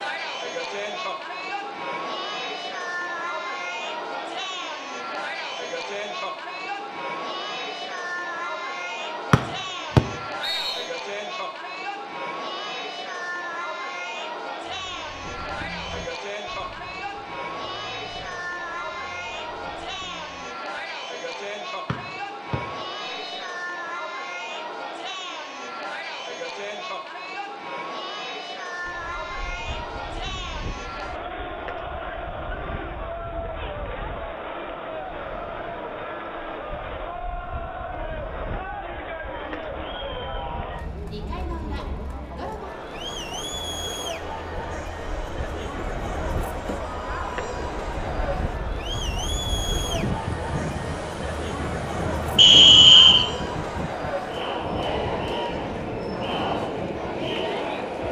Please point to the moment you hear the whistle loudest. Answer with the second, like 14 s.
53 s.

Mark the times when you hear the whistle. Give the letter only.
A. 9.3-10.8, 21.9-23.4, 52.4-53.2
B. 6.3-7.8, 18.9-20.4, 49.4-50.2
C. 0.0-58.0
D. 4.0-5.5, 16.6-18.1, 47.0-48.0
A.